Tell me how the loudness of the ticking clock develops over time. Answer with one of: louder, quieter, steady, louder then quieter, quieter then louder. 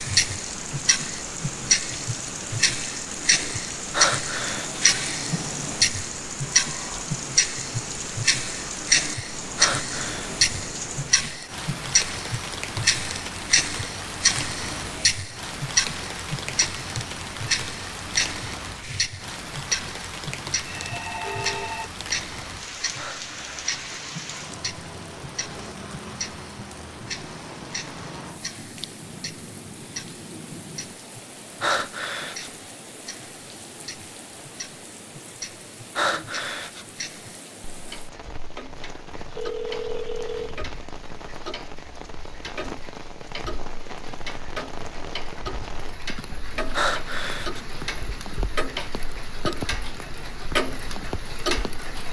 quieter then louder.